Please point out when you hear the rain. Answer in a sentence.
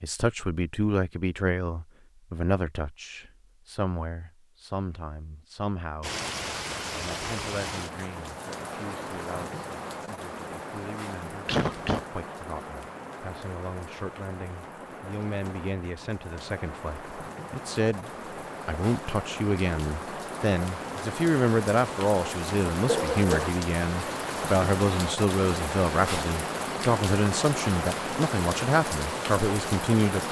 The rain can be heard from 6.0 to 30.2 s.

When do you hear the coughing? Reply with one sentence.
The coughing can be heard from 11.4 to 12.1 s and from 22.8 to 23.6 s.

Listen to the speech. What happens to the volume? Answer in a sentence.
The volume of the speech goes down, then up.